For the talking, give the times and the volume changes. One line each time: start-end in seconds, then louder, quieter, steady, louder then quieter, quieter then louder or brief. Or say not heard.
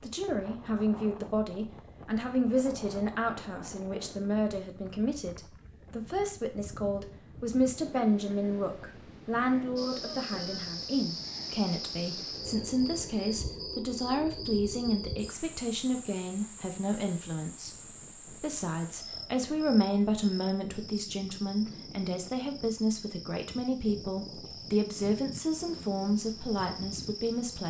0.0-27.6 steady.